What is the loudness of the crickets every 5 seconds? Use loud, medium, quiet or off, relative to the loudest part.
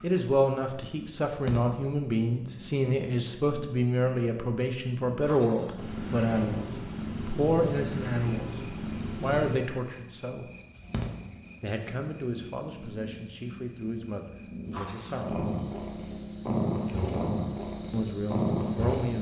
off, loud, medium, medium.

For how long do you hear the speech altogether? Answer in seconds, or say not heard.
15 s.